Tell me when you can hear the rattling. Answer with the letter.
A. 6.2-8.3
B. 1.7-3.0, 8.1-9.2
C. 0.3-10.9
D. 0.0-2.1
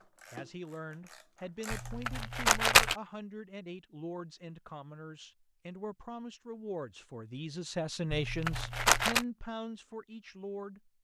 B.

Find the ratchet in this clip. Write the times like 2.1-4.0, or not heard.
0.0-2.1.